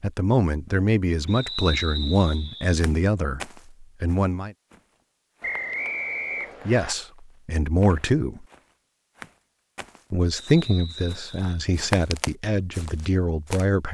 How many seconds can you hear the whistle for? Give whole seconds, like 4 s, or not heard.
4 s.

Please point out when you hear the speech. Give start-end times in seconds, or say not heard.
0.0-4.5, 6.7-8.4, 10.1-13.9.